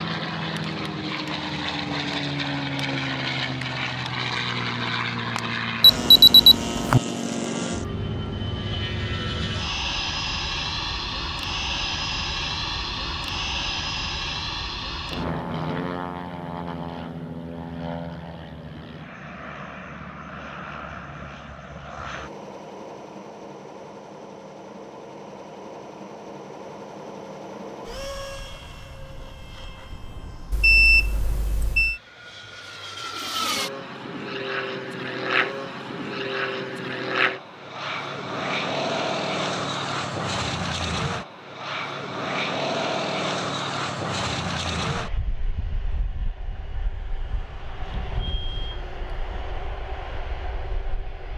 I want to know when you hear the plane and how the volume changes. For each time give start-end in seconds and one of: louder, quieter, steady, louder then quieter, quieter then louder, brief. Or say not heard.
0.0-51.3 quieter then louder.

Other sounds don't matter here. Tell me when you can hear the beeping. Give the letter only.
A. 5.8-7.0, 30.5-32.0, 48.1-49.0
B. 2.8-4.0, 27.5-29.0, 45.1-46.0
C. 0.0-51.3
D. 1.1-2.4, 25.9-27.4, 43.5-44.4
A.